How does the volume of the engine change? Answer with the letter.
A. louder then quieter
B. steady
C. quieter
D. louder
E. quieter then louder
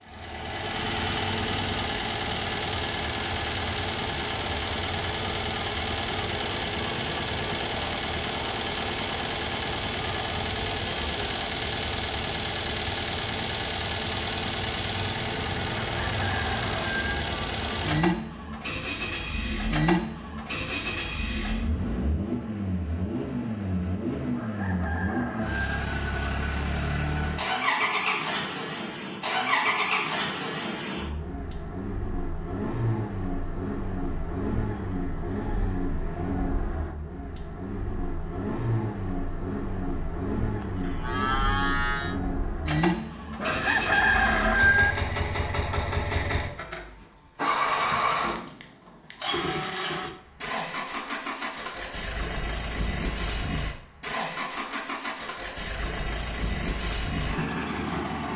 B.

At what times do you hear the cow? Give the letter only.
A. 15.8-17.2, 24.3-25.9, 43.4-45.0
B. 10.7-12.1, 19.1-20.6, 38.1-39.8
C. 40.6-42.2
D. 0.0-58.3
C.